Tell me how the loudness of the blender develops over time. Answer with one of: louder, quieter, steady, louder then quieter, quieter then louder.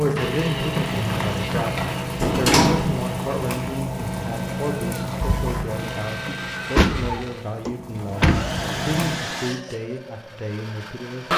quieter then louder.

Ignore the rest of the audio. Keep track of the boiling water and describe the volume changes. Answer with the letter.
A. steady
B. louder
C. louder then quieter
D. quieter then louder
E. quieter
E.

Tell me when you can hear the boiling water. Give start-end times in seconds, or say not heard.
0.0-9.2.